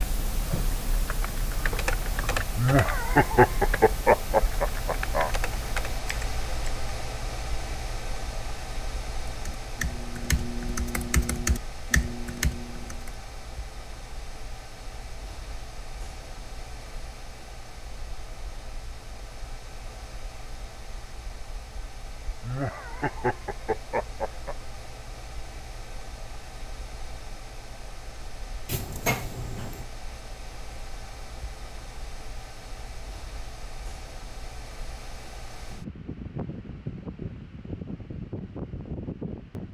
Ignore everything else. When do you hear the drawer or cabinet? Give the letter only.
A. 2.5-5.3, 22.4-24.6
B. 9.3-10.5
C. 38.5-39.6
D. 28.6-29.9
D.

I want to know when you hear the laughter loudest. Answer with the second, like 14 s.
3 s.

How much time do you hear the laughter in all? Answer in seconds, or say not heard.
5 s.